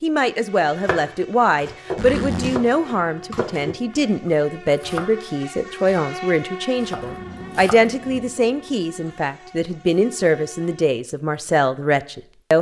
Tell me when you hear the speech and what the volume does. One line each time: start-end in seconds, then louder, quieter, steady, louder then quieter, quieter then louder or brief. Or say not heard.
0.0-12.5 steady.